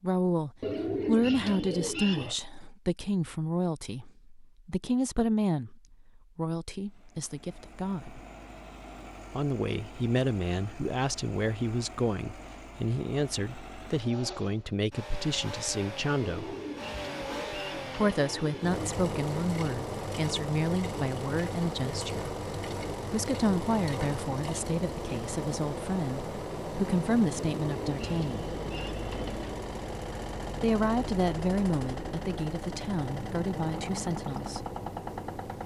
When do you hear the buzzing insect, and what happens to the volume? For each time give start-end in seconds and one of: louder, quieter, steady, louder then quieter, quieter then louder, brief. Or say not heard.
not heard.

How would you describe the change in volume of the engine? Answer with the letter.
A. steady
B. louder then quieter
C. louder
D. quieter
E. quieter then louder
C.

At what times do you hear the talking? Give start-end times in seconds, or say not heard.
0.0-8.2, 9.3-16.6, 17.9-22.3, 23.1-28.5, 30.6-34.6.